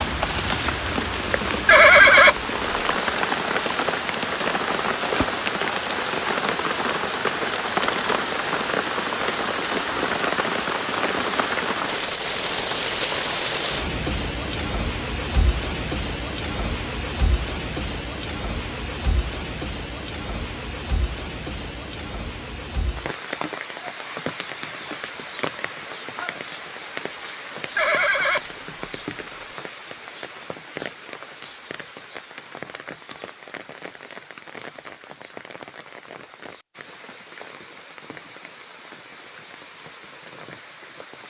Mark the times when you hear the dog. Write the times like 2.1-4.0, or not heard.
not heard.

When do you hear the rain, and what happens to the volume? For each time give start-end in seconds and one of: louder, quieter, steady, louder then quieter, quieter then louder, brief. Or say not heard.
0.0-41.2 quieter.